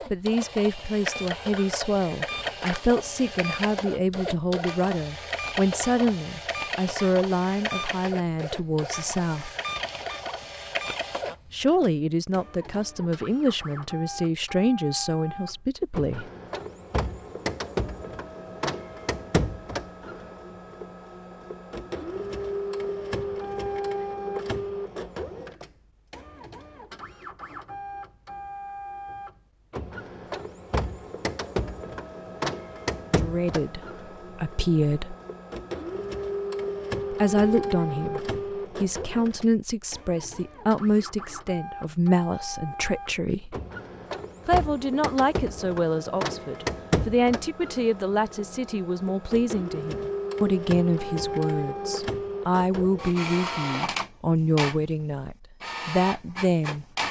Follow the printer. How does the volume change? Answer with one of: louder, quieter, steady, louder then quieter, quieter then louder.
steady.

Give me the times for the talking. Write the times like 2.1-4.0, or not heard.
0.1-9.5, 11.5-16.2, 33.1-35.1, 37.1-43.6, 44.5-56.9.